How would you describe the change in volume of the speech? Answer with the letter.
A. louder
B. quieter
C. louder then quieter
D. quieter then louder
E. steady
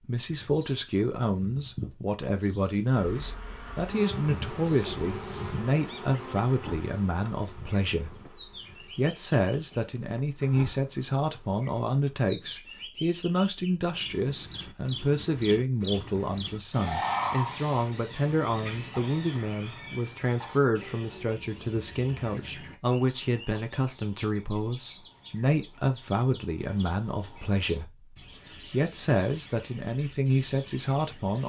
E.